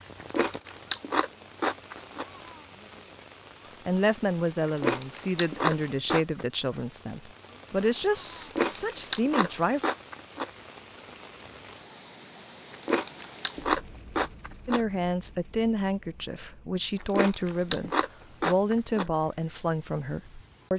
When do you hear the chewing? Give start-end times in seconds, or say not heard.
0.2-2.2, 4.7-6.4, 8.4-10.4, 12.7-14.8, 17.0-19.1.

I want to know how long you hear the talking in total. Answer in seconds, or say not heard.
12 s.